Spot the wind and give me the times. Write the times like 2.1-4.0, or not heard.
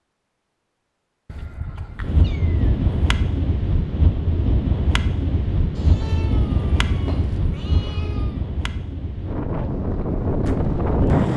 2.0-11.3.